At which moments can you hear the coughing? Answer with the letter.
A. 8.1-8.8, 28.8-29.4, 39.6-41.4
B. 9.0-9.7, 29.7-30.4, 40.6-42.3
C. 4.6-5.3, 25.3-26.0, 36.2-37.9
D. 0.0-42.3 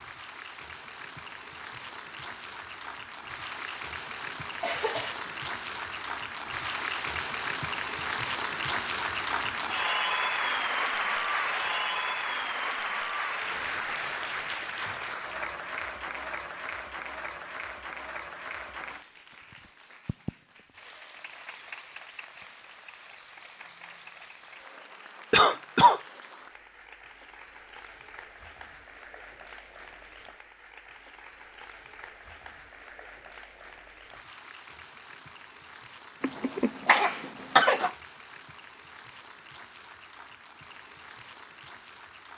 C.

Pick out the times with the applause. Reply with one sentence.
The applause can be heard from 0.0 to 42.3 s.